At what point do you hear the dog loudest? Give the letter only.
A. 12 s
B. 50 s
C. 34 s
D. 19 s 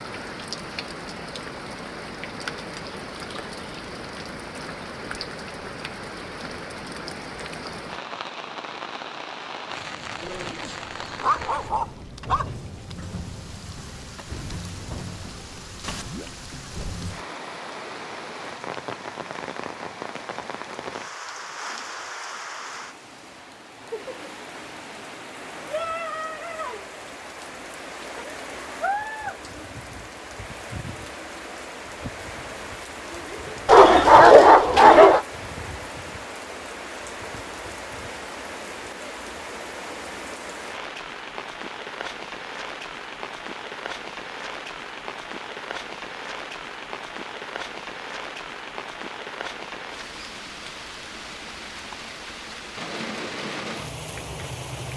C.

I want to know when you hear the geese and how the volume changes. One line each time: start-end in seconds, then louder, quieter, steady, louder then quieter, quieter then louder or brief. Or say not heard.
not heard.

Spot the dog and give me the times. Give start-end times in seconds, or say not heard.
10.2-12.5, 33.6-35.2.